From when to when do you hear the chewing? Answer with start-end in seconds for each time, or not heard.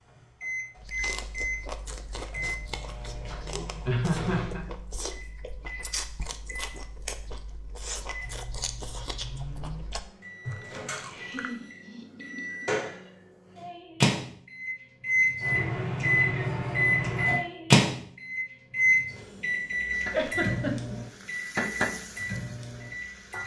0.8-11.6.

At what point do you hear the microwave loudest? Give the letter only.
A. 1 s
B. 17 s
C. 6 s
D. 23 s
B.